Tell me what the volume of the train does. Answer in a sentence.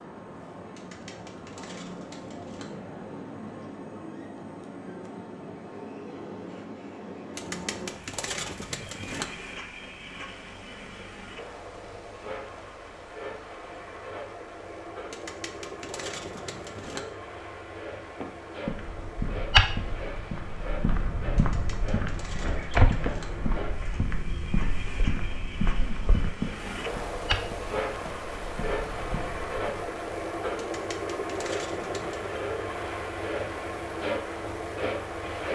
The volume of the train goes up.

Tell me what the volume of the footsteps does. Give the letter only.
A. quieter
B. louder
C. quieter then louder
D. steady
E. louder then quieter
A.